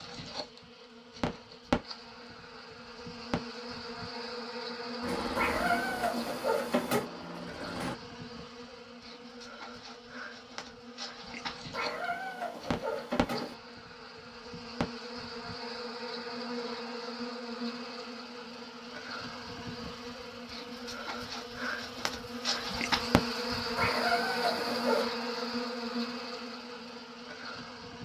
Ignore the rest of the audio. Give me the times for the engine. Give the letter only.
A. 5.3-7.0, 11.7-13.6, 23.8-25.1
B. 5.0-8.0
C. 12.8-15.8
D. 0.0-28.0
B.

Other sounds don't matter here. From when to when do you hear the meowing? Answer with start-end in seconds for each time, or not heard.
5.3-7.0, 11.7-13.6, 23.8-25.1.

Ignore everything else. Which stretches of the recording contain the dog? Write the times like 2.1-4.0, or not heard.
not heard.